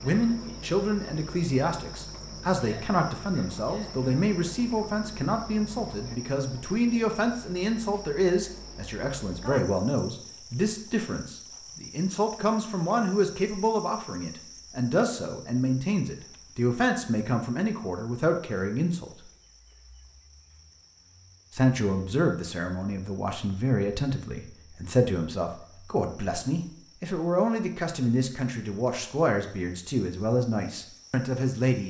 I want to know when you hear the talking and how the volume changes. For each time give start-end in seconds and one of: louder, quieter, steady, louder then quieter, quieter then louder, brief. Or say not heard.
0.0-19.1 steady
21.5-31.8 steady.